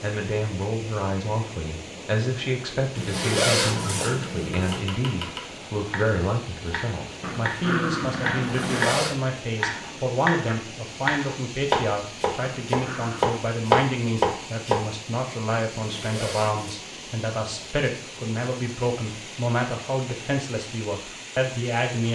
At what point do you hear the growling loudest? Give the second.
8 s.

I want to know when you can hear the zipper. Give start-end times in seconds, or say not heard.
3.0-4.8, 8.4-9.2, 15.8-16.8.